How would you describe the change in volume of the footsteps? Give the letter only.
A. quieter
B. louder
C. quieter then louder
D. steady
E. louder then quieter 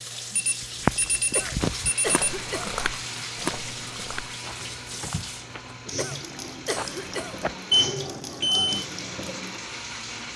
C.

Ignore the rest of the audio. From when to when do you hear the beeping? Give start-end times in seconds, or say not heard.
0.3-2.1, 7.7-8.8.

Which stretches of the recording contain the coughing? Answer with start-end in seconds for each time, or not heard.
1.4-2.8, 6.0-7.4.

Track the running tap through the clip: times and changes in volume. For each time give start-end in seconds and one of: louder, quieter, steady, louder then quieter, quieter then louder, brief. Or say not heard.
0.0-10.3 steady.